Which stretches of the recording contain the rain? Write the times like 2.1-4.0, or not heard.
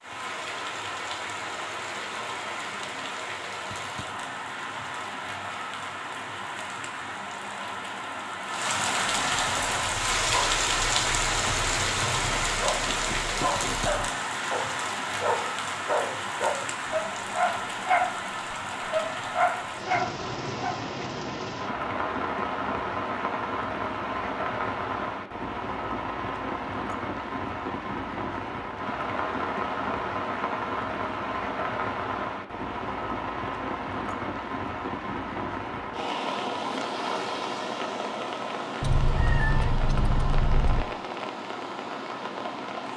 0.0-42.9.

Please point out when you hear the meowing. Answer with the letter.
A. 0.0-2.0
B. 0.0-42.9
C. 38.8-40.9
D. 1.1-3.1
C.